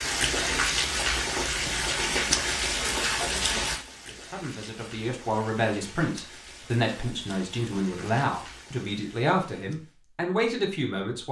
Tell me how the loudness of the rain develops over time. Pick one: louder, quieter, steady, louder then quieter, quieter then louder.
quieter.